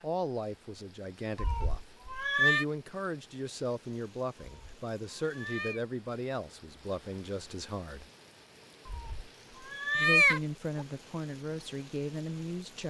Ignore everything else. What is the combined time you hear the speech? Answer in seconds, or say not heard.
11 s.